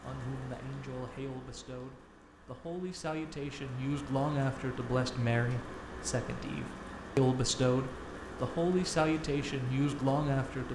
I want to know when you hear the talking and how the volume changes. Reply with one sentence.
You can hear the talking from 0.0 to 10.6 s, getting louder.